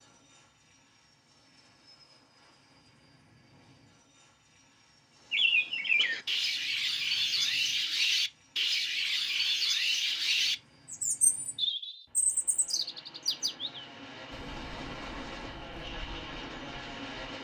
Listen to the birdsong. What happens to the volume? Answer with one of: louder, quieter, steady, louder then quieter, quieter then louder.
quieter.